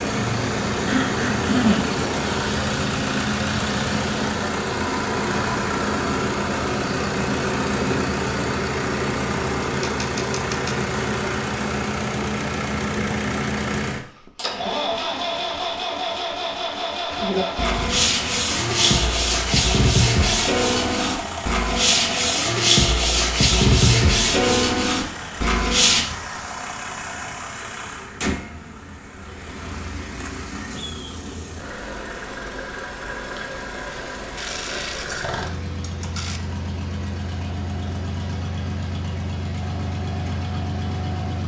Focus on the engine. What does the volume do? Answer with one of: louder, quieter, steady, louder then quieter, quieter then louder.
quieter.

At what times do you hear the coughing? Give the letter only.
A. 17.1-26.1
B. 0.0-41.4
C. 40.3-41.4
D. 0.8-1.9
D.